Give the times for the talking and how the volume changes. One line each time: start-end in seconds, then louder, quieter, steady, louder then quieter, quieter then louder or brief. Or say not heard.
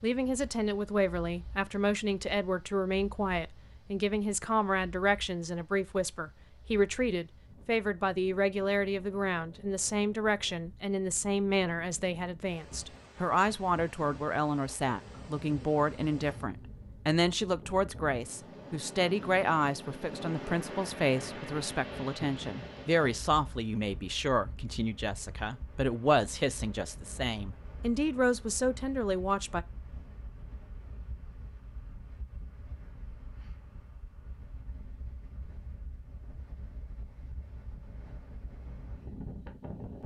0.0-29.6 steady.